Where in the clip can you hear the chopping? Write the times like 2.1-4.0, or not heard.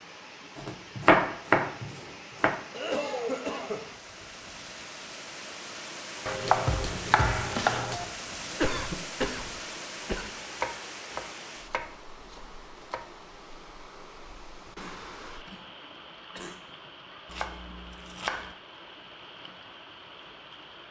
0.6-2.5, 6.2-8.1, 10.5-13.1, 17.2-18.6.